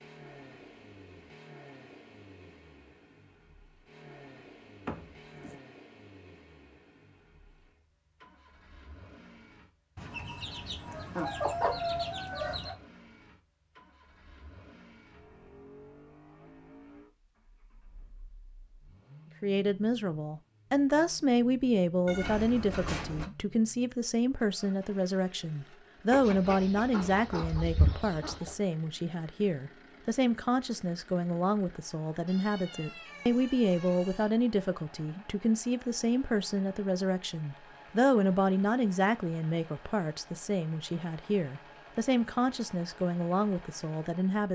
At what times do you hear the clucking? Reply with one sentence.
The clucking can be heard from 9.9 to 12.8 s and from 26.1 to 28.6 s.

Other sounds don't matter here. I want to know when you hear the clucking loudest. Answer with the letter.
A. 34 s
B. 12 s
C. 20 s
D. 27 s
B.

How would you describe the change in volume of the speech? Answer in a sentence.
The volume of the speech stays about the same.